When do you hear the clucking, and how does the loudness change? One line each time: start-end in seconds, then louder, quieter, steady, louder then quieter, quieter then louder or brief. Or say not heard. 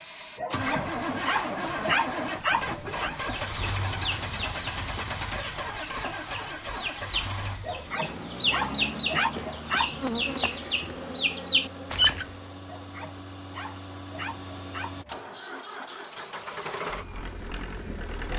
3.3-12.3 louder.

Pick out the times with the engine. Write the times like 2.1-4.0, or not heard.
0.0-18.3.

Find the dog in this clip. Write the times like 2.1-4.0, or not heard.
0.3-3.1, 7.6-10.0, 12.7-15.2.